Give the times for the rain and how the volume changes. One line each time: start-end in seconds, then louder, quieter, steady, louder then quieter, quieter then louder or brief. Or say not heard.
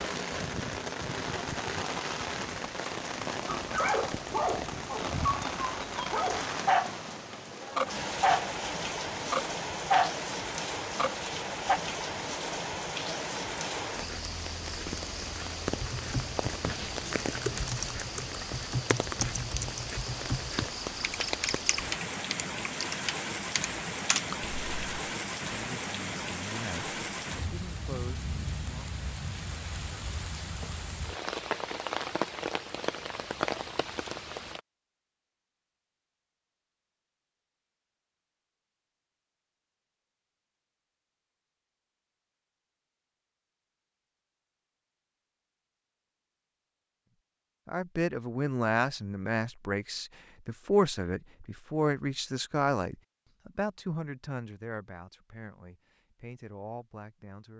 0.0-34.6 steady.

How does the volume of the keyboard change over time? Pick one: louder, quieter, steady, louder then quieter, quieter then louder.
steady.